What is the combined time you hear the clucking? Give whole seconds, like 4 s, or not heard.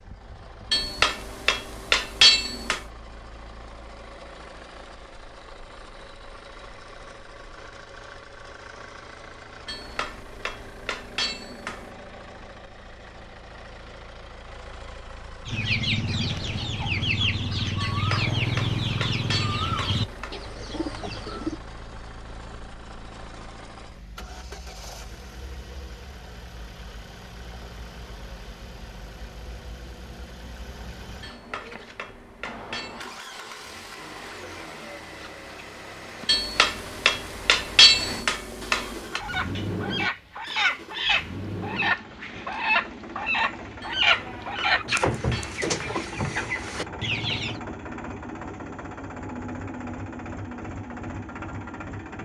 15 s.